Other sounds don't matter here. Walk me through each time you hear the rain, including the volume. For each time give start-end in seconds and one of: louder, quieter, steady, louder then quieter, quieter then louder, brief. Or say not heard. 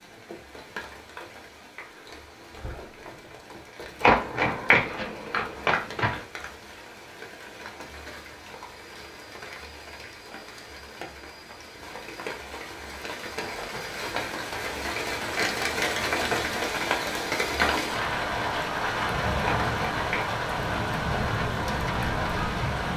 0.0-22.9 louder.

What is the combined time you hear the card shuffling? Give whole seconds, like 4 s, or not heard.
3 s.